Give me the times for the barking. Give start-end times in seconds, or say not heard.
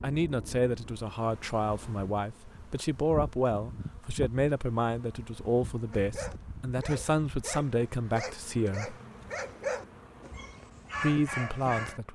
5.9-12.0.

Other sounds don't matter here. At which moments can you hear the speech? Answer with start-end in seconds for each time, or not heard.
0.0-8.9, 11.0-12.0.